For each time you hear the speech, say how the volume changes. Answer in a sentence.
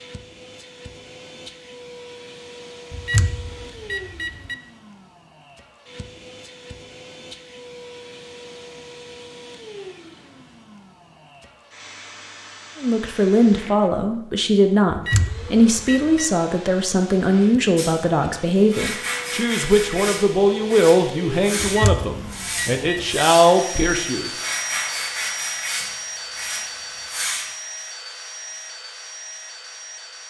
You can hear the speech from 12.8 to 24.3 s, at a steady volume.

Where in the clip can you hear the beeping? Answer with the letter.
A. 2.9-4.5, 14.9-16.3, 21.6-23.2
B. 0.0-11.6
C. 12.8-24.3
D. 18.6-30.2
A.